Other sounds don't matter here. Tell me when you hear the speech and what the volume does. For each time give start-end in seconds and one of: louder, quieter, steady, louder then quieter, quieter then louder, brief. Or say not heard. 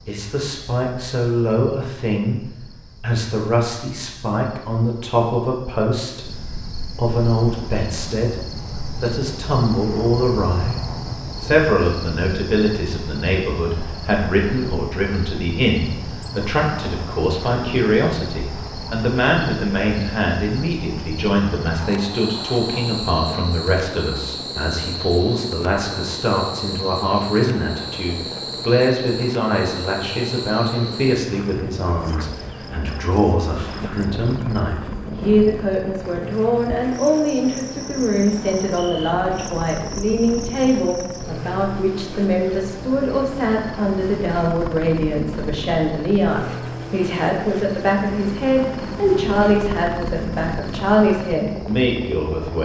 0.1-2.4 brief
3.0-52.6 steady.